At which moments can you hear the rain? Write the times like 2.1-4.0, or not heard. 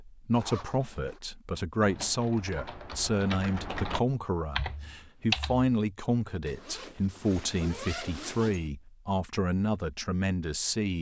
not heard.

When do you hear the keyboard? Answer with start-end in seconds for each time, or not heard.
1.8-5.7.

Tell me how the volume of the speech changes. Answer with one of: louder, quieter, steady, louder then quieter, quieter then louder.
steady.